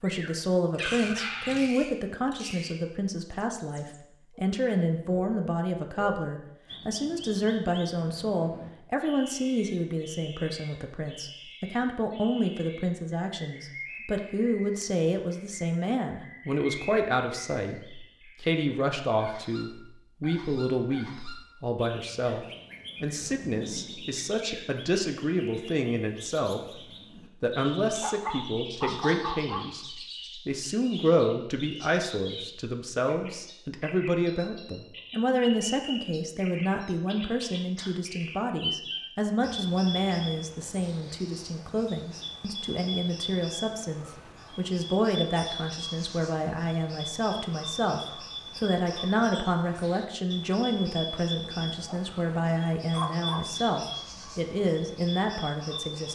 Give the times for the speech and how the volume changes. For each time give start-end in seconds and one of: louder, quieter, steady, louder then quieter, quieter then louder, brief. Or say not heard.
0.0-56.1 steady.